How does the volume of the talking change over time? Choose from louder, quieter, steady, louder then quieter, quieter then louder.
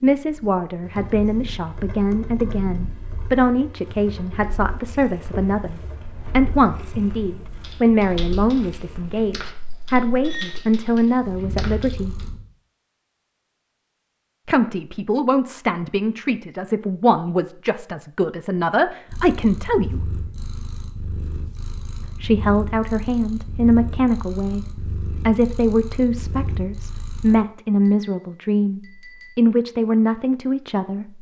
steady.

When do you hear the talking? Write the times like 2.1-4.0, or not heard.
0.0-12.2, 14.4-20.1, 22.1-31.1.